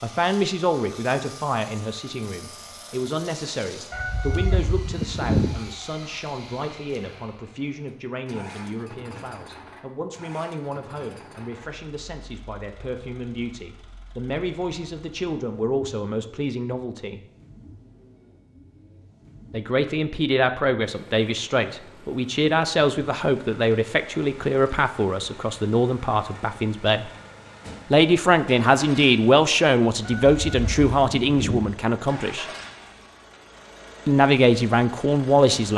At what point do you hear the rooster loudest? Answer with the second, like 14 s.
5 s.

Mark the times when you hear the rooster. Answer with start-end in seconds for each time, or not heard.
3.9-5.7, 30.1-31.8.